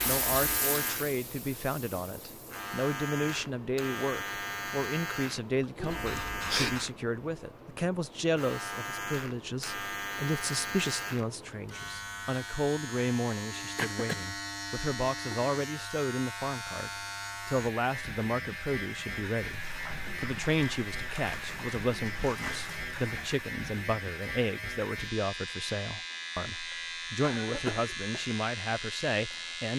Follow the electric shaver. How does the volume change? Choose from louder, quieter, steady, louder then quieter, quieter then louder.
steady.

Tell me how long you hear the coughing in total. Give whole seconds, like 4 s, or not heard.
3 s.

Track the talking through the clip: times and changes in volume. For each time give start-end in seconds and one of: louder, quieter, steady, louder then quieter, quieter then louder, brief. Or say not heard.
0.1-29.7 steady.